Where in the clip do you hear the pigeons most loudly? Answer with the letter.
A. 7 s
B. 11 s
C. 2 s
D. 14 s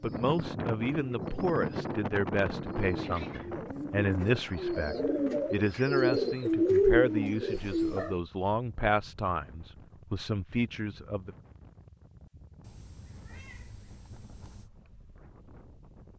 A.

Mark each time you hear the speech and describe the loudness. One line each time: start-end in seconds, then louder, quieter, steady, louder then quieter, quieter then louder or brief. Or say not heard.
0.0-11.3 steady.